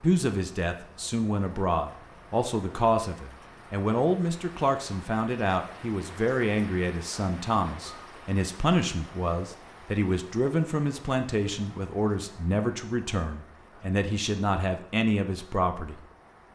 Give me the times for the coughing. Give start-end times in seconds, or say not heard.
not heard.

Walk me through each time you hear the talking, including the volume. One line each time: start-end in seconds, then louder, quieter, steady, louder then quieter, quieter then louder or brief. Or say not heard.
0.0-16.1 steady.